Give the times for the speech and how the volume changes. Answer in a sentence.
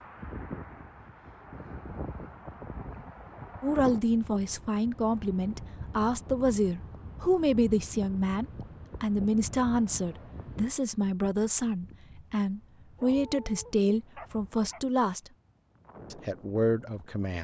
The speech can be heard from 3.6 to 15.3 s, at a steady volume; and briefly from 16.1 to 17.3 s.